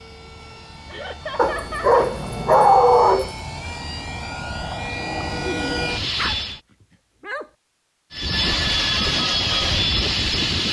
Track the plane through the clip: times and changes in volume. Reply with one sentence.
The plane can be heard from 0.0 to 6.6 s, getting louder; and briefly from 8.1 to 10.6 s.